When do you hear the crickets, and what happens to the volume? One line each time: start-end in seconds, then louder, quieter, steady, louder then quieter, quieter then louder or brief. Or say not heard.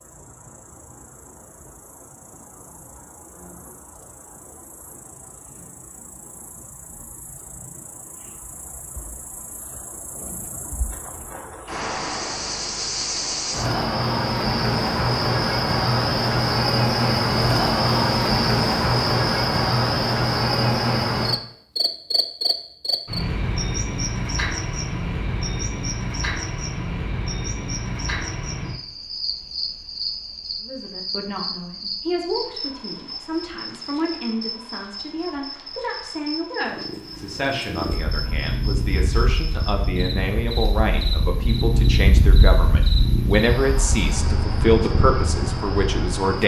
0.0-46.4 louder then quieter.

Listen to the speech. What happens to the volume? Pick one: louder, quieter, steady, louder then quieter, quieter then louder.
louder.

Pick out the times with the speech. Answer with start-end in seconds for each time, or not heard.
30.6-46.4.